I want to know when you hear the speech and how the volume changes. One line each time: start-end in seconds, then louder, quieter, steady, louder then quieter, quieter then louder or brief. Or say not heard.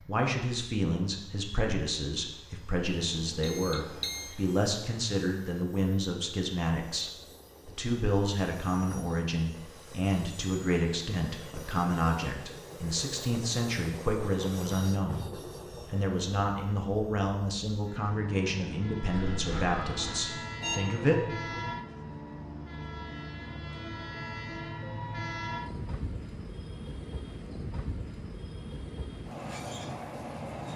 0.1-21.6 steady.